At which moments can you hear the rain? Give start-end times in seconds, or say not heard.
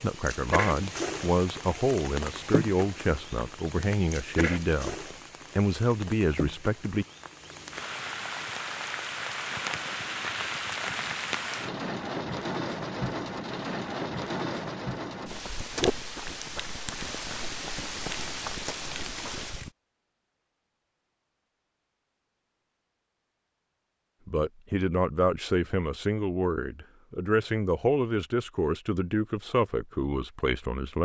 0.0-19.7.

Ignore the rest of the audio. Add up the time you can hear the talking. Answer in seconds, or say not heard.
14 s.